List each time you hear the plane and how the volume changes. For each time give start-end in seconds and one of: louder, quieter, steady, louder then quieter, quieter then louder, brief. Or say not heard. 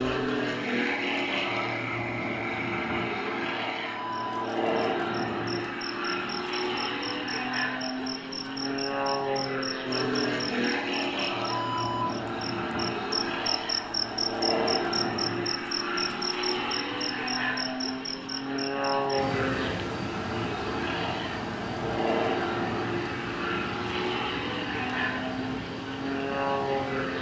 0.0-27.1 steady.